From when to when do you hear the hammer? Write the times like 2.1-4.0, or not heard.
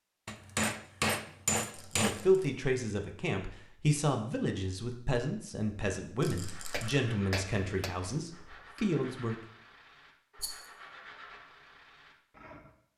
0.2-2.2, 6.7-8.8.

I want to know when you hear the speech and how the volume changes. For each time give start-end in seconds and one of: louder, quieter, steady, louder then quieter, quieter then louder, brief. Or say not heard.
1.9-9.3 steady.